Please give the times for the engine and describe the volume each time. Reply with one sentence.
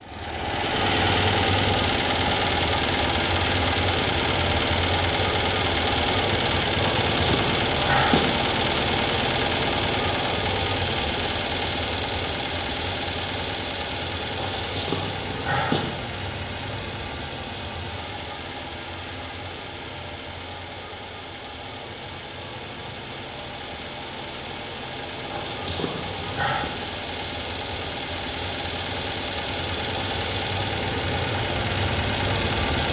You can hear the engine from 0.0 to 32.8 s, getting quieter then louder.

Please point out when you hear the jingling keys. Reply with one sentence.
The jingling keys can be heard from 7.0 to 8.3 s, from 14.3 to 15.8 s and from 25.3 to 26.7 s.